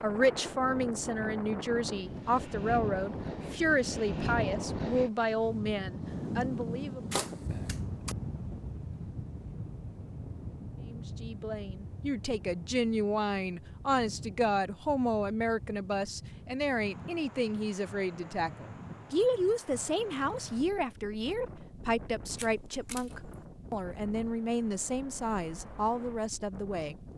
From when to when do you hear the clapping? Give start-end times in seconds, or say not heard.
not heard.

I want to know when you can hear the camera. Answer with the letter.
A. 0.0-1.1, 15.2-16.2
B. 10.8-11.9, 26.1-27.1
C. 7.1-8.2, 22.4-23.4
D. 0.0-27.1
C.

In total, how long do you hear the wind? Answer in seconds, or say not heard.
27 s.